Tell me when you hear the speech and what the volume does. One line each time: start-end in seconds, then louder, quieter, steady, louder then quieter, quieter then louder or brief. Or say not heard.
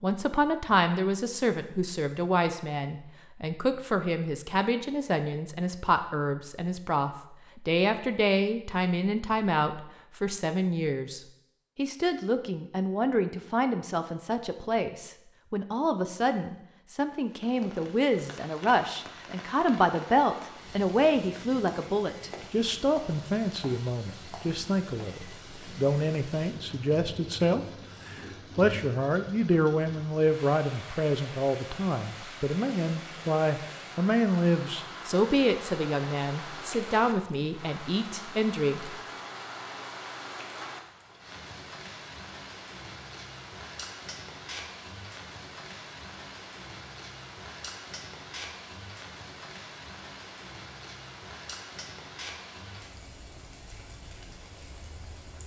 0.0-39.0 steady.